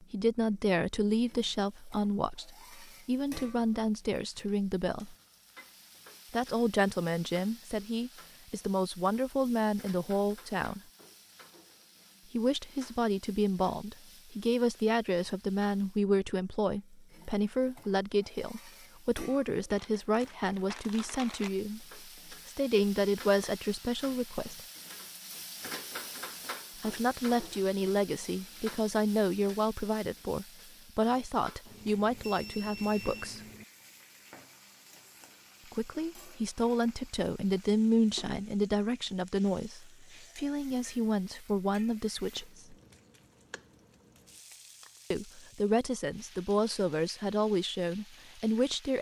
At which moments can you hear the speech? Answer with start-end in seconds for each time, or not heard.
0.0-5.2, 6.3-10.8, 12.3-24.6, 26.8-33.4, 35.7-42.8, 45.1-48.9.